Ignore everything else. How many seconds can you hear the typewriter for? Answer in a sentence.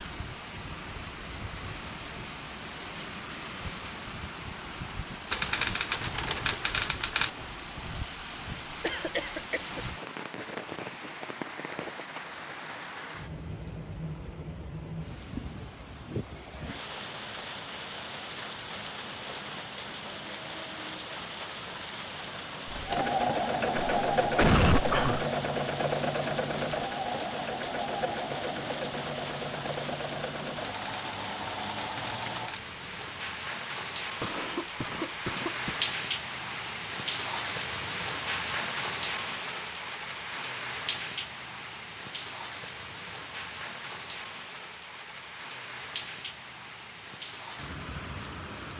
You can hear the typewriter for 4 seconds altogether.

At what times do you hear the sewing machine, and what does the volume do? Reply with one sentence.
You can hear the sewing machine from 22.6 to 33.4 s, getting quieter.